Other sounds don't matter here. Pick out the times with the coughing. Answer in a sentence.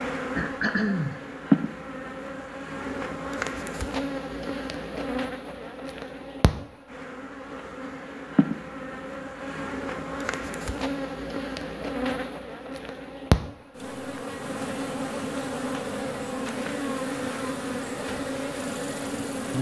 You can hear the coughing from 0.3 to 1.2 s.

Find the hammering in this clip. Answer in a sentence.
You can't hear the hammering here.